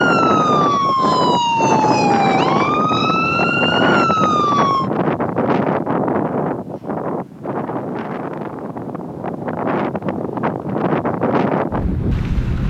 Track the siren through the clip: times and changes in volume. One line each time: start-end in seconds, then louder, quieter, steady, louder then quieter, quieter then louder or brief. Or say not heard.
0.0-4.9 steady.